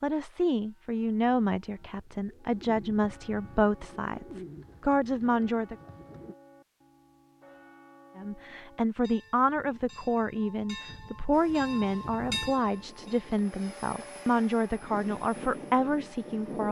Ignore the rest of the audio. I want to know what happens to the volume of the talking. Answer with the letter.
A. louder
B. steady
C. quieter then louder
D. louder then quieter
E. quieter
B.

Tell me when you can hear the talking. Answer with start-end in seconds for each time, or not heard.
0.0-5.8, 8.2-16.6.